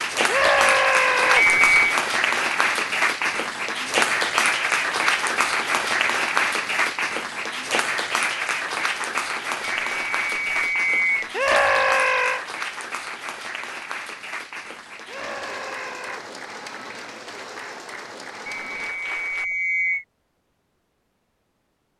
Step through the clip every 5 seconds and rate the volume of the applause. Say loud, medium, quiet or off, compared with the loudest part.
loud, loud, medium, quiet, off.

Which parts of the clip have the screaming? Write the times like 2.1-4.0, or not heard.
0.2-1.4, 11.3-12.4, 15.1-16.2.